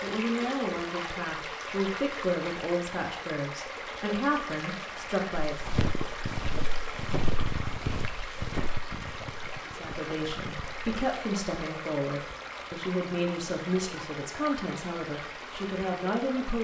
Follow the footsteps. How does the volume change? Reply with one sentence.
The volume of the footsteps goes down.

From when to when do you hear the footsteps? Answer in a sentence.
The footsteps can be heard from 5.3 to 10.9 s.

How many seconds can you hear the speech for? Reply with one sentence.
You can hear the speech for 13 seconds altogether.